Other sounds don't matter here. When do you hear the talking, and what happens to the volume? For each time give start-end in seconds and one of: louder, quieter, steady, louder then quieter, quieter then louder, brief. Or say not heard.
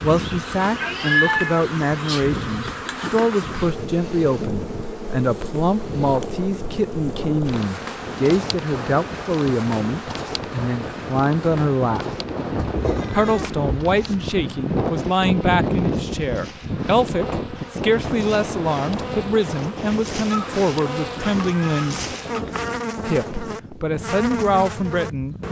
0.0-12.2 steady
13.1-22.1 steady
23.1-25.4 brief.